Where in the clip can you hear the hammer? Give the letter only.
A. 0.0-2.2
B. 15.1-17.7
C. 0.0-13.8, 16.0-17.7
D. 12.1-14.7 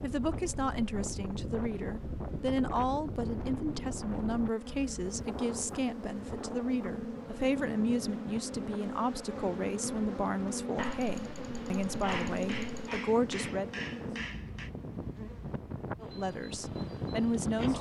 D.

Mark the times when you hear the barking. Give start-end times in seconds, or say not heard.
10.8-13.0.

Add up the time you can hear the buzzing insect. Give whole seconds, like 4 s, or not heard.
18 s.